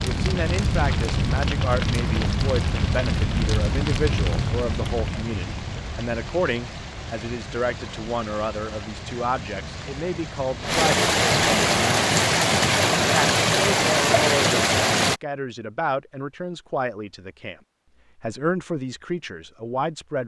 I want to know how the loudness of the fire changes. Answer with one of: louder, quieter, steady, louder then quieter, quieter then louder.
quieter.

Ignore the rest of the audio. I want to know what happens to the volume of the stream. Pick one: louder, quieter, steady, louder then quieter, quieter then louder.
louder.